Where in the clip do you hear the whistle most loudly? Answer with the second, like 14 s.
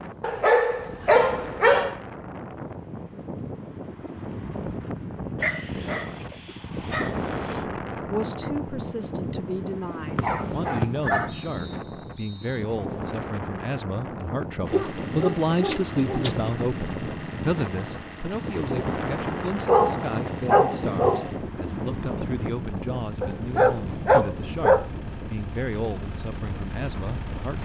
11 s.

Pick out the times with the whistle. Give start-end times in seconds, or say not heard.
10.2-12.7.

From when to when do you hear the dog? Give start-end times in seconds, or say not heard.
0.2-2.0, 5.4-7.7, 10.2-11.4, 14.7-16.4, 19.6-21.3, 23.2-24.9.